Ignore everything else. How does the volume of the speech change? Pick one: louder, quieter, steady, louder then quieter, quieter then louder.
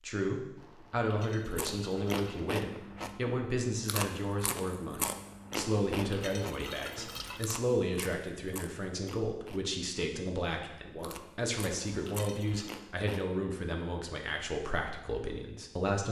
steady.